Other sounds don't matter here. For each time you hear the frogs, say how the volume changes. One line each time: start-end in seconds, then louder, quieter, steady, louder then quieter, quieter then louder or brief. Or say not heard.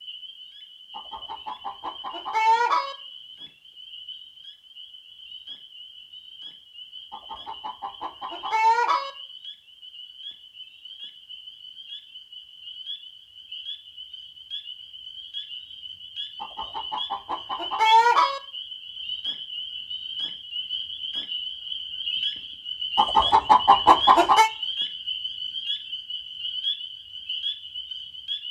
0.0-28.4 louder.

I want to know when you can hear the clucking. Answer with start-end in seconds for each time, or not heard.
0.9-3.0, 7.1-9.1, 16.4-18.4, 22.9-24.5.